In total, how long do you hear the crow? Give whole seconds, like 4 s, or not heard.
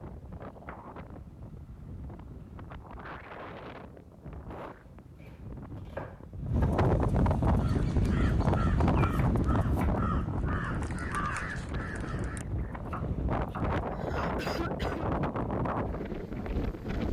5 s.